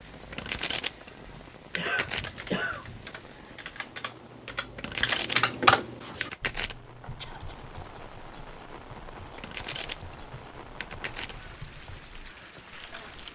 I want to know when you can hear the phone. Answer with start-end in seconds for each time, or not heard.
not heard.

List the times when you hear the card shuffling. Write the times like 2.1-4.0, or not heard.
0.1-1.1, 1.7-2.4, 4.5-5.5, 6.2-6.8, 9.2-10.2, 10.8-11.4.